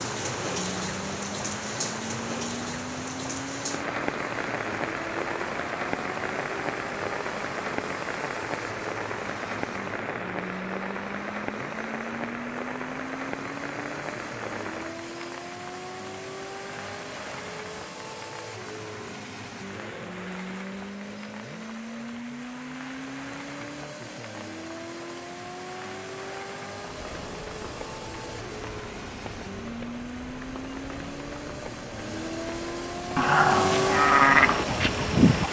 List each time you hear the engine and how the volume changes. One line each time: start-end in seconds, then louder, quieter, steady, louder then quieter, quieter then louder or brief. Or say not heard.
0.0-35.4 louder.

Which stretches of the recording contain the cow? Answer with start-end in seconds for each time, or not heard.
33.1-35.4.